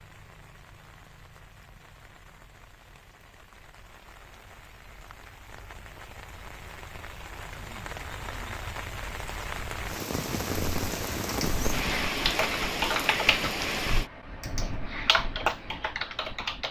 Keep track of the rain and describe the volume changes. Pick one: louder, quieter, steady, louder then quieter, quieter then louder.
louder.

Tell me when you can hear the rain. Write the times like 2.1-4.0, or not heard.
0.0-14.1.